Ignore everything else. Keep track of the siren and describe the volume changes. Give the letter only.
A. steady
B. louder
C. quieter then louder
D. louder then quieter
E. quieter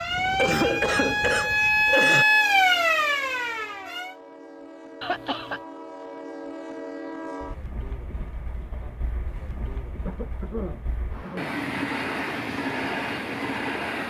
D.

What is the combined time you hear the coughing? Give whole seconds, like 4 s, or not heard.
4 s.